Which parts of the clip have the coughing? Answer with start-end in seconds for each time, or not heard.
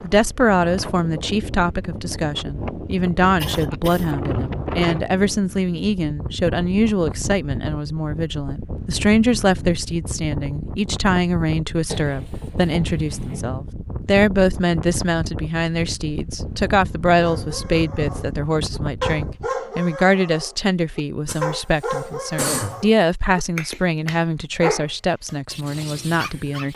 3.4-4.2, 11.8-13.5, 21.2-22.9.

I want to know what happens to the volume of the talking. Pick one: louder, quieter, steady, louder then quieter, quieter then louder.
steady.